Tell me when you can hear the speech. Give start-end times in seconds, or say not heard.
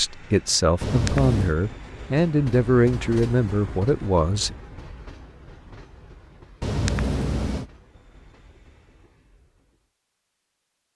0.0-4.5.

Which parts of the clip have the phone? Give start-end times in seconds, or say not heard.
0.8-1.6, 6.6-7.7.